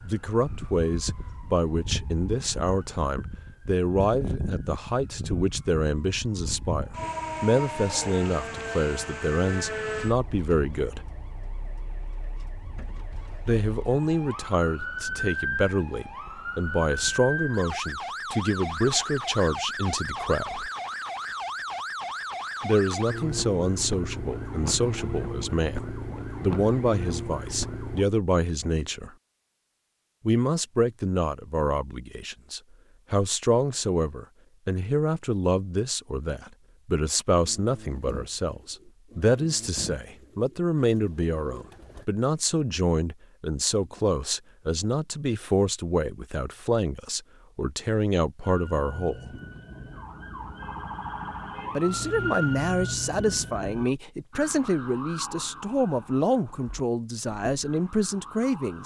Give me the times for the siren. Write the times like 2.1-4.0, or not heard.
0.0-28.1, 48.4-58.8.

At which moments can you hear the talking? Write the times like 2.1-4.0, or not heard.
0.0-11.1, 13.4-20.7, 22.6-29.1, 30.2-49.4, 51.8-58.8.